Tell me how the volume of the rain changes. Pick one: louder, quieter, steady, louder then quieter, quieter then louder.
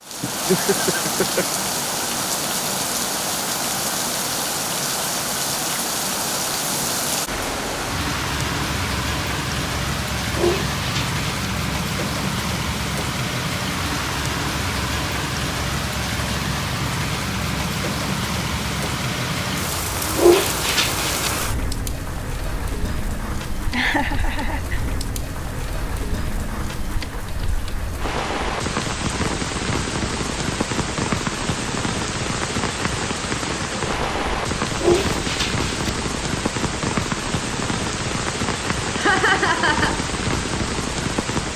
steady.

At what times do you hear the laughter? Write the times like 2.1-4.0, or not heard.
0.2-1.4, 23.7-24.8, 39.0-40.0.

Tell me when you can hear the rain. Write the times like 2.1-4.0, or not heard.
0.0-41.5.